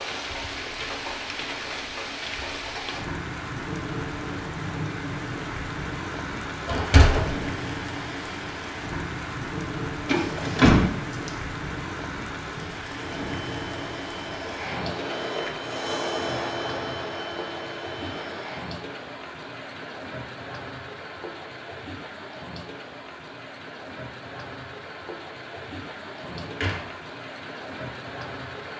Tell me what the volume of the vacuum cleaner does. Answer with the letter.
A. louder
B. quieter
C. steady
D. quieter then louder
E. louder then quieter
E.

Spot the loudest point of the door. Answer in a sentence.
The volume of the door peaks at 11 seconds.